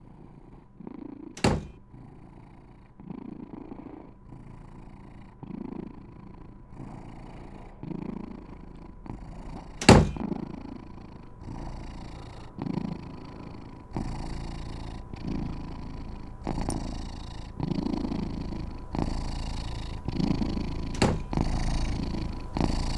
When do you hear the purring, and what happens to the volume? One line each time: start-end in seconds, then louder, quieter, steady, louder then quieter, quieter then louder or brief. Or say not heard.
0.0-22.9 louder.